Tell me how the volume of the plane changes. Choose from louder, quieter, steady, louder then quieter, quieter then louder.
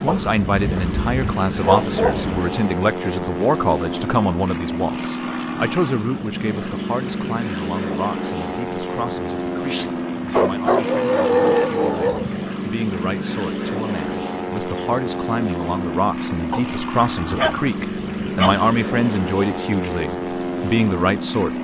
steady.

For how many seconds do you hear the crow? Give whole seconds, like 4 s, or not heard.
not heard.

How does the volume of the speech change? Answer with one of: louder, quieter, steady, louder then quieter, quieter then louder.
quieter then louder.